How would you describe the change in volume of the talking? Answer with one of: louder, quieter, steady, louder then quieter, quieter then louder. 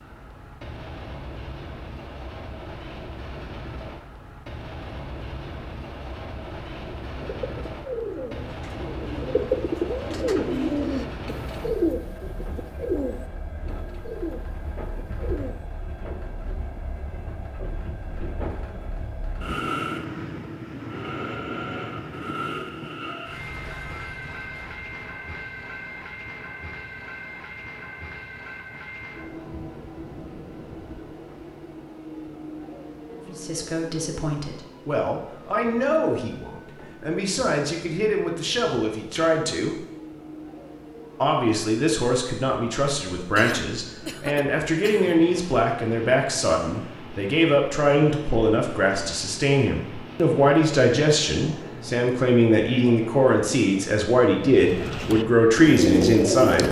louder.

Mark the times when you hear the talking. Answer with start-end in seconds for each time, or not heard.
33.1-39.8, 41.2-56.6.